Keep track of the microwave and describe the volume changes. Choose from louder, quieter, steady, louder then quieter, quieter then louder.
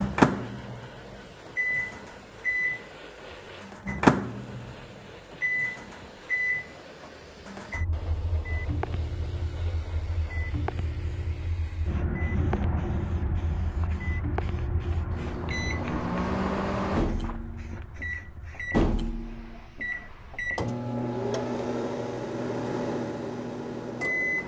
quieter then louder.